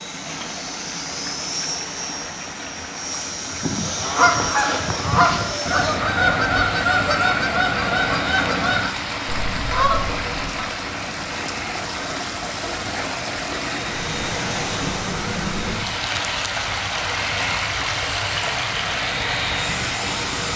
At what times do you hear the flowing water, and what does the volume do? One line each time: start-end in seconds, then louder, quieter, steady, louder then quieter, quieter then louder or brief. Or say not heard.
0.0-20.5 louder.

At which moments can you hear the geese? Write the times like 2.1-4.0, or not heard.
3.5-10.7.